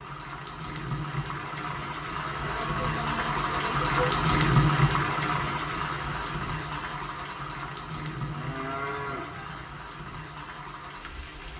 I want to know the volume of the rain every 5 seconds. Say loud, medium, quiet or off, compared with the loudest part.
loud, medium, quiet.